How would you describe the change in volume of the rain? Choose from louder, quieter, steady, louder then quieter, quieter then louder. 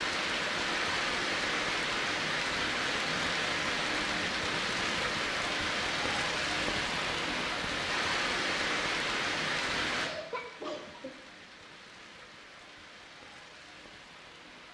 quieter.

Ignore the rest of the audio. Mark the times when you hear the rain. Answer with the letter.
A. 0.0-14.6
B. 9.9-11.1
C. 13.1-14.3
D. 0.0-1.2
A.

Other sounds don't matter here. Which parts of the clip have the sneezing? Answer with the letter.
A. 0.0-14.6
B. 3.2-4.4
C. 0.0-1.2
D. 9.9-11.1
D.